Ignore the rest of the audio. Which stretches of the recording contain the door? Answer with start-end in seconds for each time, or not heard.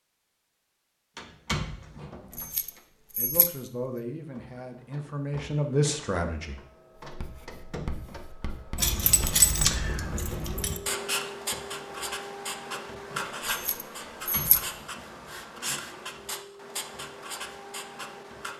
1.1-2.8, 14.0-15.4.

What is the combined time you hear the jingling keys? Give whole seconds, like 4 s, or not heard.
5 s.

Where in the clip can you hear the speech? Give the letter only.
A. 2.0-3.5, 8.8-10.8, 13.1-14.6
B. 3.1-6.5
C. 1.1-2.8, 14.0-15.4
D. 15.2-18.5
B.